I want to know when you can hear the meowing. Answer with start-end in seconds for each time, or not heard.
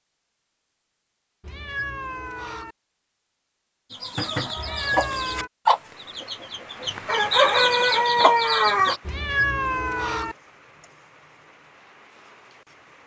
1.4-2.8, 4.5-5.5, 9.1-10.3.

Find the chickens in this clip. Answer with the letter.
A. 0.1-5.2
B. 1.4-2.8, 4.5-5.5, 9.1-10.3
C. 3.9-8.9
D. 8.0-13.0
C.